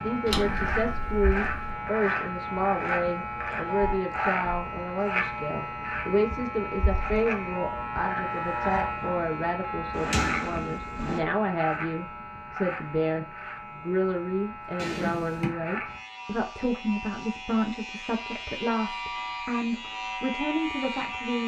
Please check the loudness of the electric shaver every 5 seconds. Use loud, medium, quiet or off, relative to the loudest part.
loud, loud, medium, medium, loud.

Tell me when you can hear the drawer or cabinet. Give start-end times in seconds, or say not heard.
0.2-1.8, 9.9-11.2, 14.8-15.6.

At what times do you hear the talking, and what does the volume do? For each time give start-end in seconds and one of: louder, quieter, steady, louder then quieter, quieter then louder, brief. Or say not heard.
0.0-21.4 steady.